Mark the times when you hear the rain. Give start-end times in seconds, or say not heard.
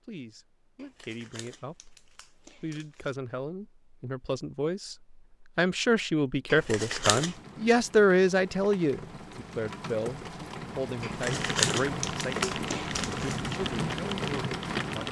7.1-15.0.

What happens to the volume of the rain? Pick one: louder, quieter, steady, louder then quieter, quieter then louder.
louder.